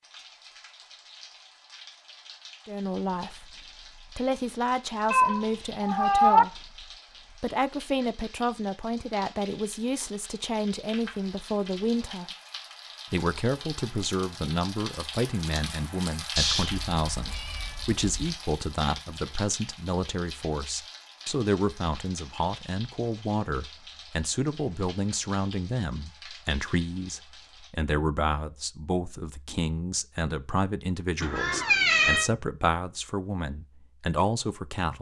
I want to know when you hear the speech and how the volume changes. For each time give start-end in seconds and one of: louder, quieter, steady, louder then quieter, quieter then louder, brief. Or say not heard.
2.6-12.3 steady
13.1-34.9 steady.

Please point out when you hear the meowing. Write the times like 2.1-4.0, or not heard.
5.1-6.5, 16.4-18.4, 31.2-32.3.